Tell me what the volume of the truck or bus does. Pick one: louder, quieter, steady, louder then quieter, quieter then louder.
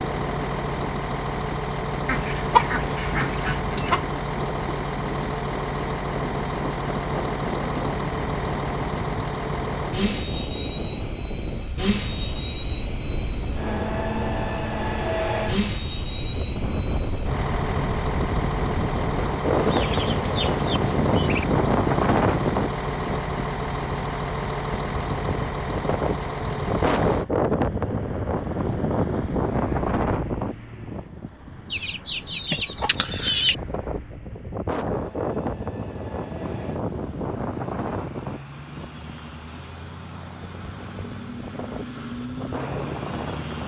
quieter.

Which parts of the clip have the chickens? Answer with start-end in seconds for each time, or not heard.
2.0-4.0, 19.5-21.4, 31.7-33.5.